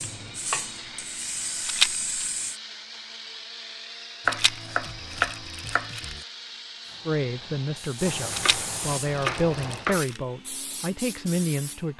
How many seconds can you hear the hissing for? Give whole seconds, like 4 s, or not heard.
8 s.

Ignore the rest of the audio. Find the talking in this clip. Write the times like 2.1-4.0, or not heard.
7.0-11.9.